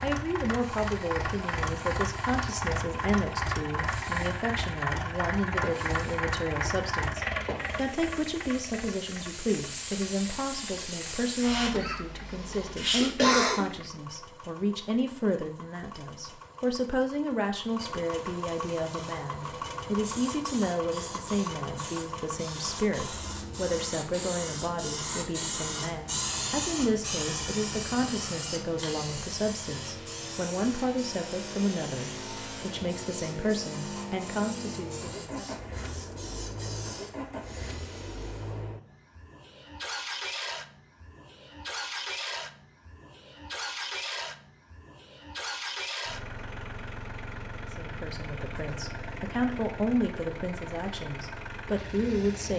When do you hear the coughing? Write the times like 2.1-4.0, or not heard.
11.7-13.7.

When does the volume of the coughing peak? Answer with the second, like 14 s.
13 s.